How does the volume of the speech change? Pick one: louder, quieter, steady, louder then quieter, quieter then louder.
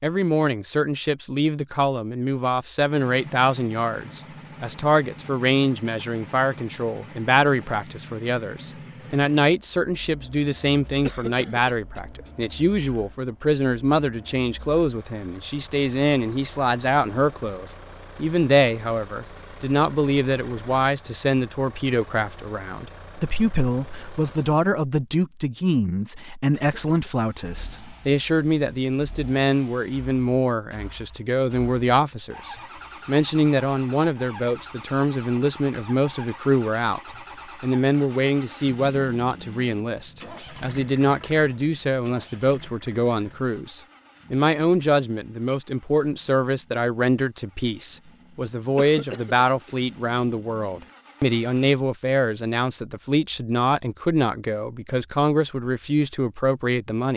steady.